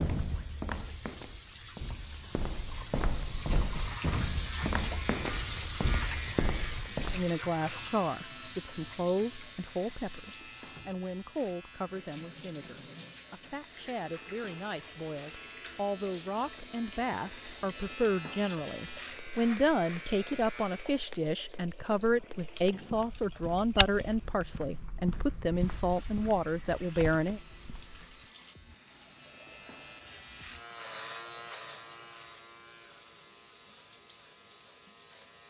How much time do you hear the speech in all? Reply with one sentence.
The speech can be heard for 20 seconds in total.